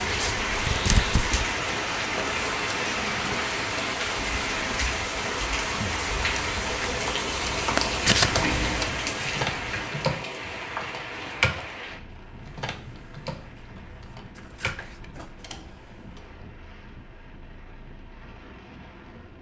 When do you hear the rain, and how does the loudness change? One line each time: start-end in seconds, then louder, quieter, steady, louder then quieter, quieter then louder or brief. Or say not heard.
0.0-19.3 quieter.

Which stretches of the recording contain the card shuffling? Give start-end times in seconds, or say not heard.
0.2-1.6, 7.8-8.4, 13.6-15.4.